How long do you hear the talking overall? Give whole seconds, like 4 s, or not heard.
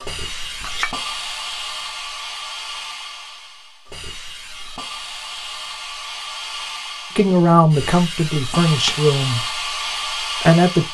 4 s.